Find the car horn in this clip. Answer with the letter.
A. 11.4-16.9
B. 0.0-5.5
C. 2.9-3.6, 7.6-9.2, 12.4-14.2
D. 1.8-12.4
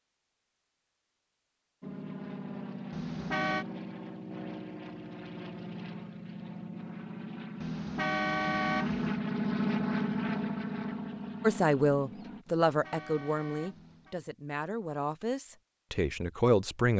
C.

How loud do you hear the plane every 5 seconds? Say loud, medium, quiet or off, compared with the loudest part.
medium, loud, loud, off.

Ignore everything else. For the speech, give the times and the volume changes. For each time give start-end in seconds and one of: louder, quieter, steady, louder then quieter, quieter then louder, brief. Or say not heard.
11.4-16.9 quieter then louder.